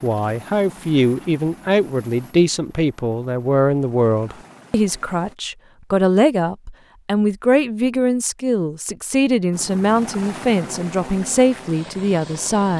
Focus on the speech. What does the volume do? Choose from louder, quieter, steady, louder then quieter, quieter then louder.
steady.